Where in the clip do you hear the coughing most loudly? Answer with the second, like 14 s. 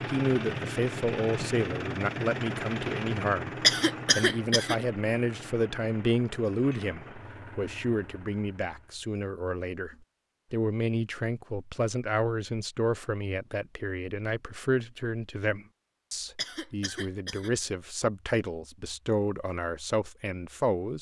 4 s.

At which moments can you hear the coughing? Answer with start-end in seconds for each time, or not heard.
3.6-4.8, 16.4-17.5.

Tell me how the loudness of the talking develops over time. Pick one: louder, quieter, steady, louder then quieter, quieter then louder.
steady.